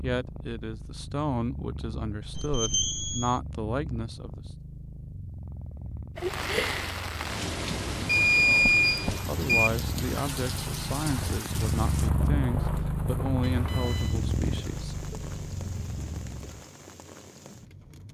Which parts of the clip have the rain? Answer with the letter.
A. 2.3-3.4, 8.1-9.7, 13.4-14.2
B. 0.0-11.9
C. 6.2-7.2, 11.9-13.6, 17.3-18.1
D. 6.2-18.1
D.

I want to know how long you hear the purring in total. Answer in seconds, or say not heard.
17 s.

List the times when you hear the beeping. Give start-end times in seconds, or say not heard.
2.3-3.4, 8.1-9.7, 13.4-14.2.